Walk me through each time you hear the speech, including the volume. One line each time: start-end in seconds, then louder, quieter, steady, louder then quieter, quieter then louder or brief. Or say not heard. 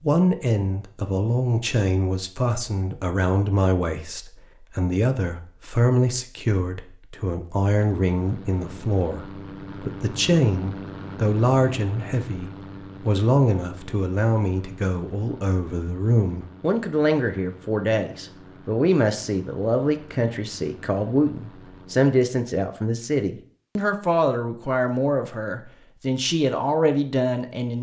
0.0-27.7 steady.